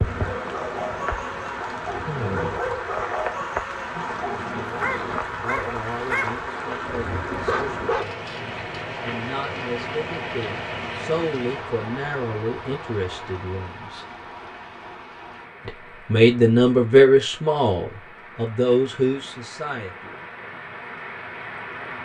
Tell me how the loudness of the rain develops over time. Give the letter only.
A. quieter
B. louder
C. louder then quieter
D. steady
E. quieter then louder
A.